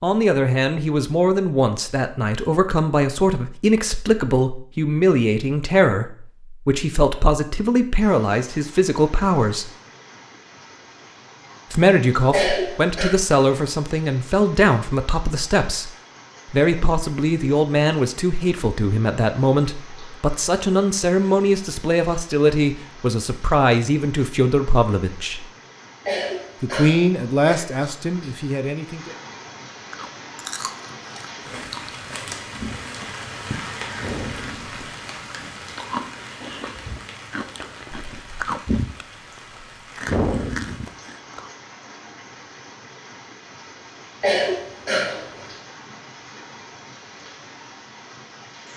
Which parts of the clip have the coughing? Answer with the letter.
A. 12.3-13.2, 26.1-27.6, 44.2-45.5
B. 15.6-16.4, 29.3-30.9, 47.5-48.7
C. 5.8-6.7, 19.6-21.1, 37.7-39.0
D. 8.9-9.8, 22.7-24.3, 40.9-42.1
A.